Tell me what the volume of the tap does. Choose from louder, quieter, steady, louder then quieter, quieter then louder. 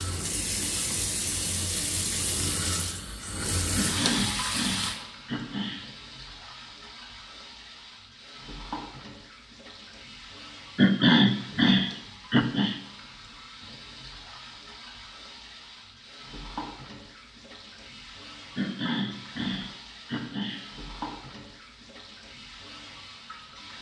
quieter.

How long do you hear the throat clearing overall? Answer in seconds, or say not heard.
6 s.